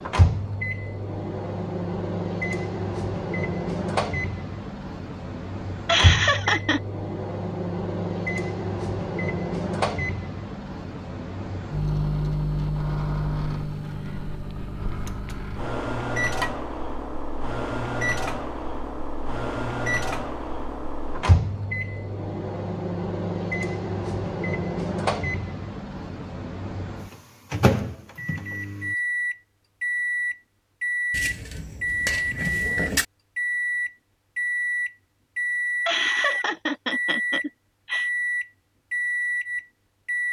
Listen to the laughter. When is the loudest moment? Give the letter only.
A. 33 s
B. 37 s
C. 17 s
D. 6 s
D.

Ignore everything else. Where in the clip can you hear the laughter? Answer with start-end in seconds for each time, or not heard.
5.8-6.8, 35.9-38.1.